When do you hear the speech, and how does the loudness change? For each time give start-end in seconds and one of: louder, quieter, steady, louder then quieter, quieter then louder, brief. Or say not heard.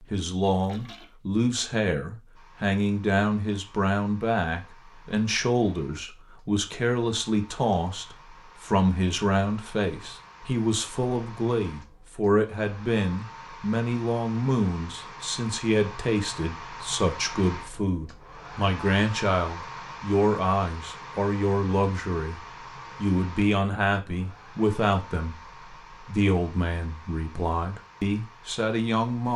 0.0-29.3 steady.